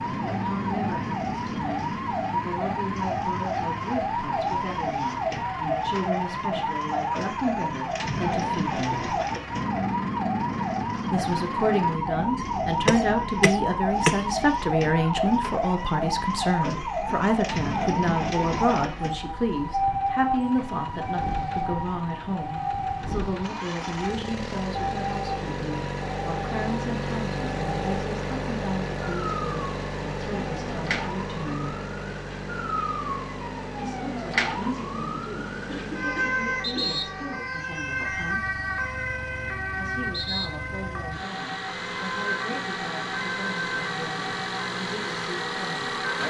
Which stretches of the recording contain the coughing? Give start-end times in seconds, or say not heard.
12.8-14.2, 35.6-37.0.